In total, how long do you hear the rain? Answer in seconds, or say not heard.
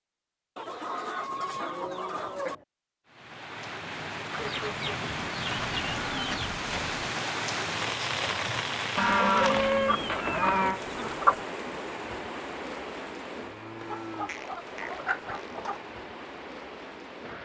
14 s.